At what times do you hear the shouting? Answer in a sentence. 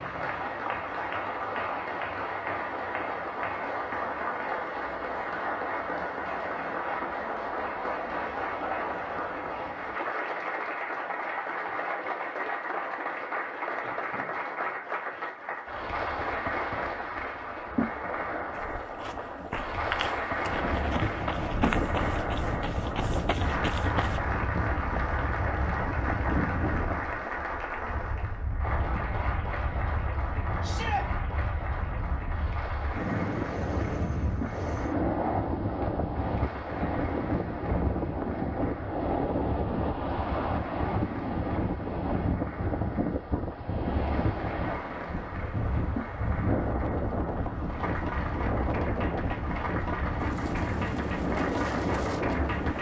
You can hear the shouting from 30.6 to 31.1 s.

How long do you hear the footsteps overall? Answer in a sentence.
The footsteps can be heard for 6 seconds in total.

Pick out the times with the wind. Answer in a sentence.
You can hear the wind from 20.4 to 52.7 s.